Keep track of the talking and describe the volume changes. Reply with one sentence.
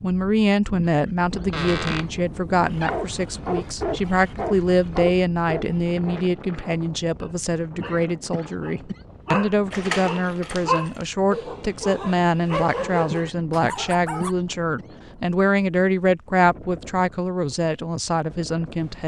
The volume of the talking stays about the same.